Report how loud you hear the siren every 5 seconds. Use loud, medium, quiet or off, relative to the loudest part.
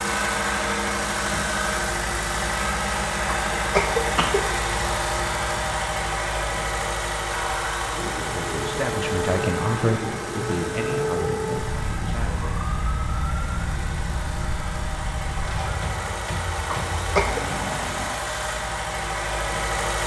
off, loud, loud, loud.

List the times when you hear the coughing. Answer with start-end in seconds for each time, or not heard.
3.2-4.4, 16.7-17.4.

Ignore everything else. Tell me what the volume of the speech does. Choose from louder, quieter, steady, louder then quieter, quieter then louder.
quieter.